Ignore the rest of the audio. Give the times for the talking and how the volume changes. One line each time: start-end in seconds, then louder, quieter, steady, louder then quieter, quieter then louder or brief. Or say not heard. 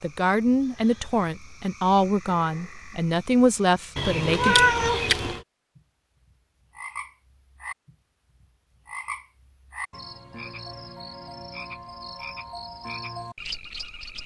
0.0-4.7 steady.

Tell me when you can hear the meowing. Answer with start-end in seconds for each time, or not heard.
4.0-5.4.